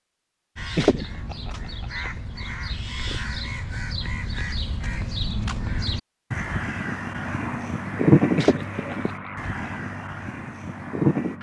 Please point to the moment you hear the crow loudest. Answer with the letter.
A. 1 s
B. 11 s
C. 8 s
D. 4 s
C.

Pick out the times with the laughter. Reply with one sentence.
The laughter can be heard from 0.8 to 1.5 s and from 8.3 to 9.1 s.